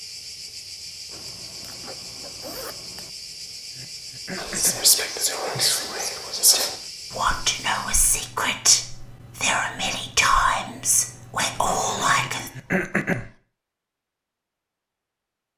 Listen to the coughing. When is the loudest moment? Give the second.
13 s.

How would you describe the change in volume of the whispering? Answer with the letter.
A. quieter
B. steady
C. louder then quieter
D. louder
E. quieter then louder
B.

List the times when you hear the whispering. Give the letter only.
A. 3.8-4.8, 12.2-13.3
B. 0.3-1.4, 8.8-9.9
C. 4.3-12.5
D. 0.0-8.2
C.